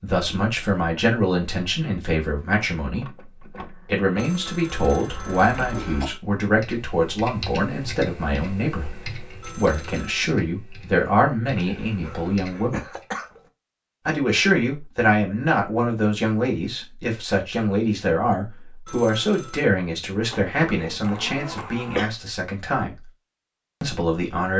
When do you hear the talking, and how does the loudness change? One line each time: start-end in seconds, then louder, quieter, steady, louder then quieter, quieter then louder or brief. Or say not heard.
0.0-12.8 steady
14.1-23.1 quieter
23.8-24.5 brief.